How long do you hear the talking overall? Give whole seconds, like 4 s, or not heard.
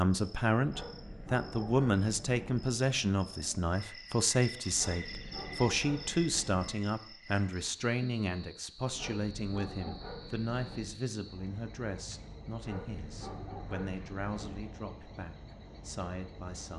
17 s.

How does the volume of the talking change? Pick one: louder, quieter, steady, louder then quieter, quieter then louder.
quieter.